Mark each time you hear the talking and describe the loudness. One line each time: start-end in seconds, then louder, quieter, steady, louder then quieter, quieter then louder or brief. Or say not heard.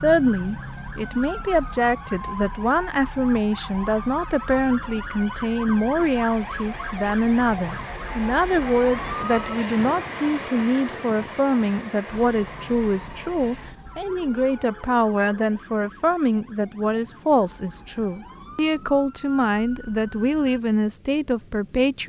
0.0-22.0 steady.